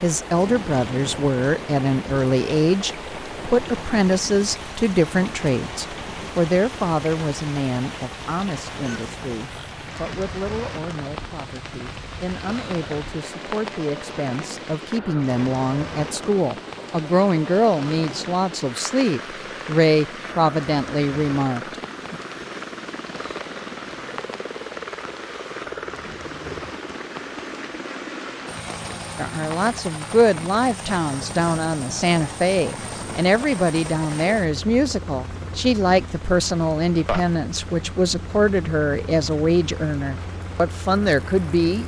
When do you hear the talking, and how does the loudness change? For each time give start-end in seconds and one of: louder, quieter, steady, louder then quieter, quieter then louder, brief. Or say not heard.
0.0-22.1 quieter then louder
29.1-41.8 steady.